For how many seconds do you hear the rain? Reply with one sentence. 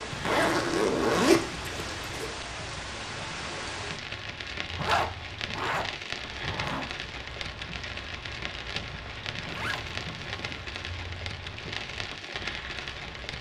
You can hear the rain for 13 seconds altogether.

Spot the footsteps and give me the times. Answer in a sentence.
The footsteps can't be heard in this clip.